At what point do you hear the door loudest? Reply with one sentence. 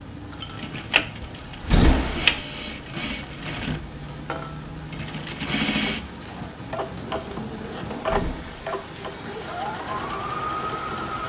The volume of the door peaks at 2 seconds.